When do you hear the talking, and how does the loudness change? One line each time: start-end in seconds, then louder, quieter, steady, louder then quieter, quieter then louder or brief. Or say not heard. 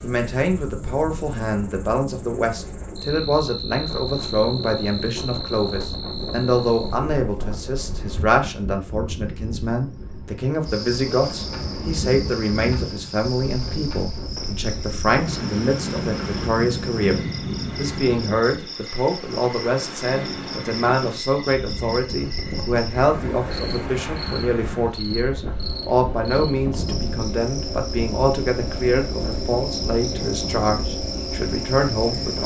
0.0-32.4 steady.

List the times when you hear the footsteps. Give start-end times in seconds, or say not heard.
not heard.